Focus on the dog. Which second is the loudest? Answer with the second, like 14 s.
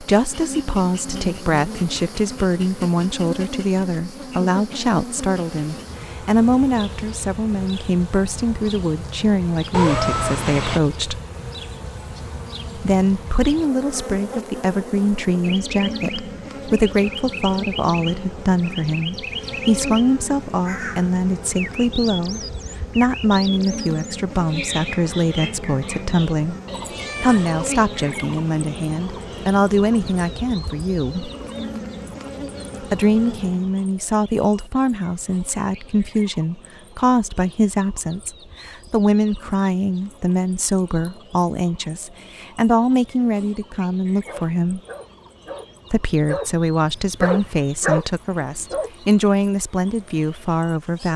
48 s.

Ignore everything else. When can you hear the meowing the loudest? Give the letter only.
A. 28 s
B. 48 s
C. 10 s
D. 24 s
C.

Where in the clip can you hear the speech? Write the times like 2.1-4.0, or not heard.
0.0-11.2, 12.8-26.6, 27.2-31.3, 32.8-44.8, 45.9-51.1.